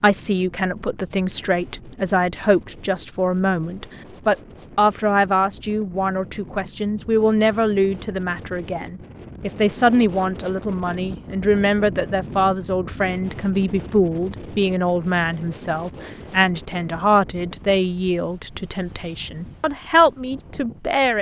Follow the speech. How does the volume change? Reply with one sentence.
The loudness of the speech stays about the same.